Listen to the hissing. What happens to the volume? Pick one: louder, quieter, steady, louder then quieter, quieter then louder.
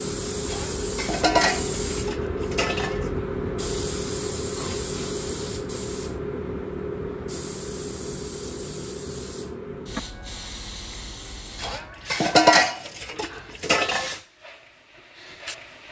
quieter.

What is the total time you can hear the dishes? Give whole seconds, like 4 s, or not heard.
5 s.